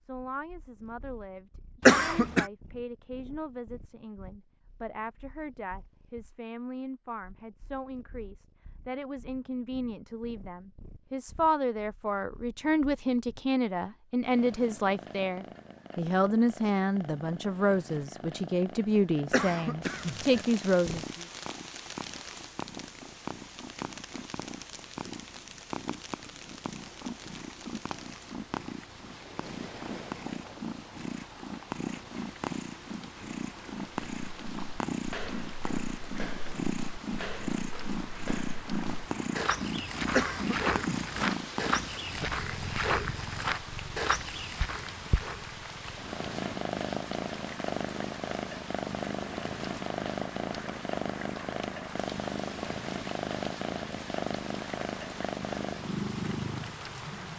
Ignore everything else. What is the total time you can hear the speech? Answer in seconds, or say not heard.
21 s.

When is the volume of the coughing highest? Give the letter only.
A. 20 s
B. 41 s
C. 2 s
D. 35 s
C.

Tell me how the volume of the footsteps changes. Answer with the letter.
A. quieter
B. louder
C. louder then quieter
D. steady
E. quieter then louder
B.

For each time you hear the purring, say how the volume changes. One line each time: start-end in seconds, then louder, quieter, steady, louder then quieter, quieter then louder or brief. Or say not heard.
0.0-57.3 louder.